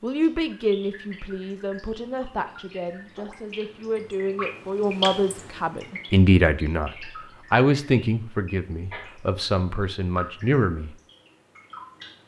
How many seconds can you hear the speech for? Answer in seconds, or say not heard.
11 s.